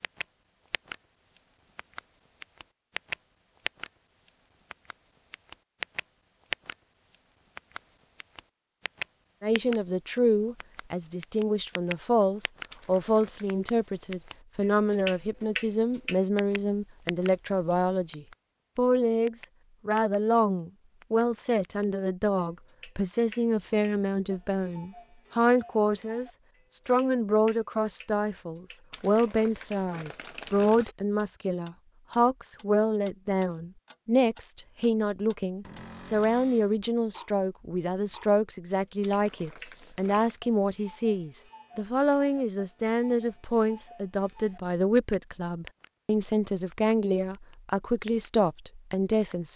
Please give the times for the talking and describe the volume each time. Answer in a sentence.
You can hear the talking from 9.4 to 49.5 s, at a steady volume.